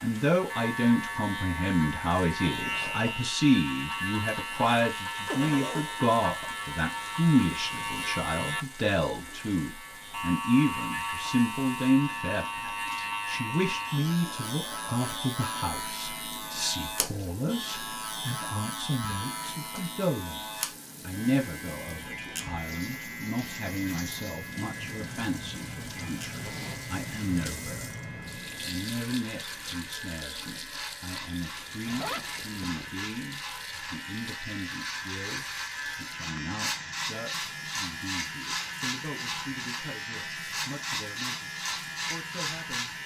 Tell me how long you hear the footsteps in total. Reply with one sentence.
You can't hear the footsteps here.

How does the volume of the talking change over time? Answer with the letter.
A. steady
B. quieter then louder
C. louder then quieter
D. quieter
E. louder
D.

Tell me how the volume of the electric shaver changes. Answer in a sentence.
The volume of the electric shaver goes down, then up.